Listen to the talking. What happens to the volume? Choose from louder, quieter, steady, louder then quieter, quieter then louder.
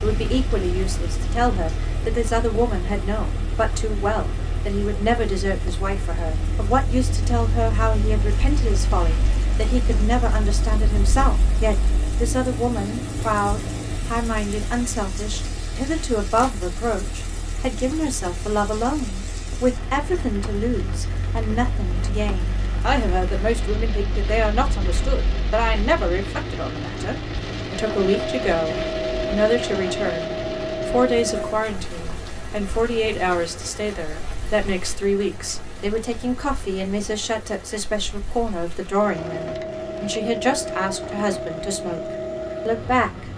steady.